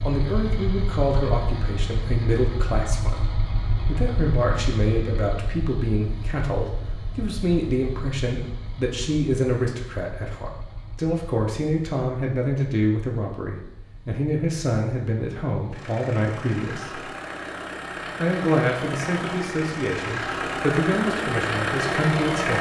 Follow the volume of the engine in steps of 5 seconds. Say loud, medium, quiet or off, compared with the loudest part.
medium, quiet, quiet, medium, loud.